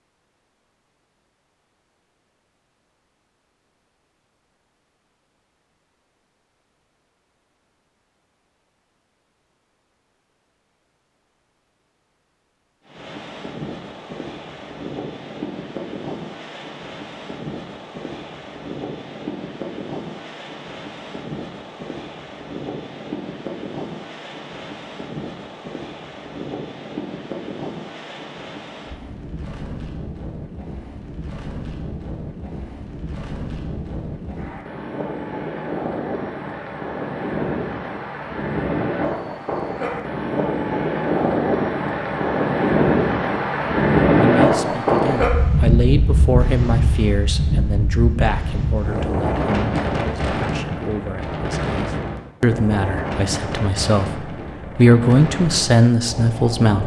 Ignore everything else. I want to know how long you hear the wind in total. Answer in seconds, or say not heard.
44 s.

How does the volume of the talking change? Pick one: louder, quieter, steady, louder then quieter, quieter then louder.
quieter then louder.